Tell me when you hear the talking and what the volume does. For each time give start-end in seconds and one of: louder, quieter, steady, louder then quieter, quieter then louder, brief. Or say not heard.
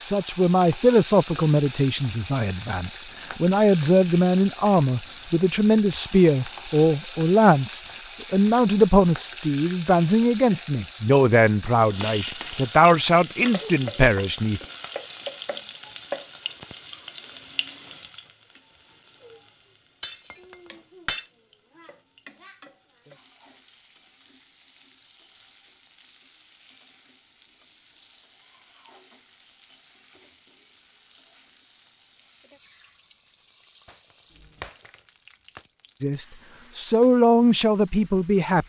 0.0-14.6 steady
36.0-38.6 brief.